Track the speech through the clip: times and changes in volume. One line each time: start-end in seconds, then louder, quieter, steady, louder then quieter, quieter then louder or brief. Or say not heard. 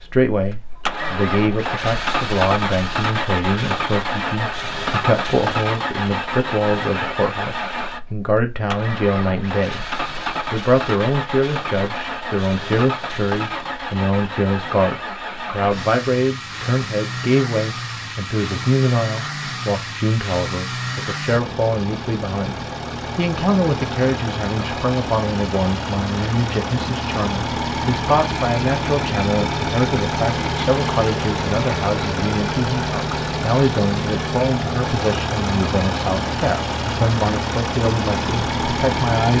0.0-9.8 steady
10.5-39.3 steady.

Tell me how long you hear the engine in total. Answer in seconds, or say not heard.
39 s.